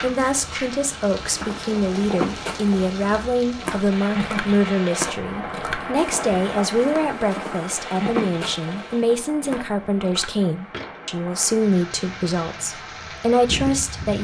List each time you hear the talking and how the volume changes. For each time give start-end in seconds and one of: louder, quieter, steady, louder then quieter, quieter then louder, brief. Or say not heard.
0.0-14.1 steady.